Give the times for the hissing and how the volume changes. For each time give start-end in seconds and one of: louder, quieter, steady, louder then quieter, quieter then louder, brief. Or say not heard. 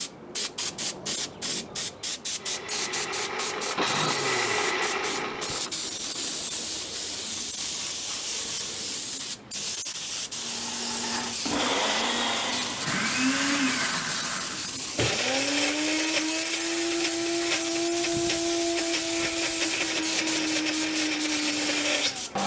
0.0-22.4 steady.